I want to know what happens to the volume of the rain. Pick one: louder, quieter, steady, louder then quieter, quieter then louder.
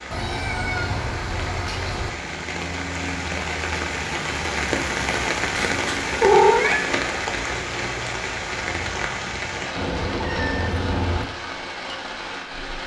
louder then quieter.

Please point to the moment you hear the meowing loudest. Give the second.
6 s.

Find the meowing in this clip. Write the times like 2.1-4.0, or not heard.
0.1-2.1, 5.5-6.8, 9.8-11.2.